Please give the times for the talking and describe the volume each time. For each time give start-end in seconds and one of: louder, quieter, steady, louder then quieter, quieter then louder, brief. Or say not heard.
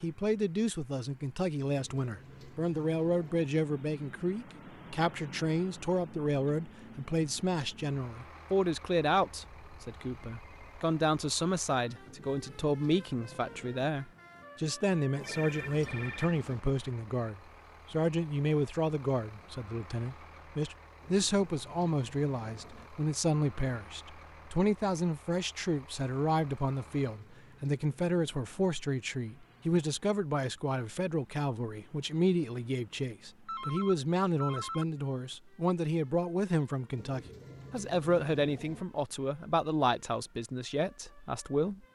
0.0-41.8 steady.